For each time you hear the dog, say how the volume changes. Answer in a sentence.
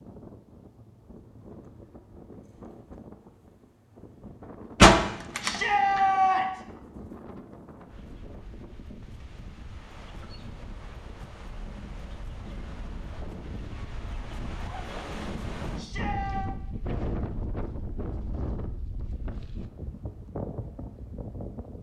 You can't hear the dog here.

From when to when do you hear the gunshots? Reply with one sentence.
The gunshots can be heard from 4.8 to 6.0 s.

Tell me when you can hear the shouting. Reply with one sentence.
The shouting can be heard from 5.4 to 6.6 s and from 15.8 to 16.5 s.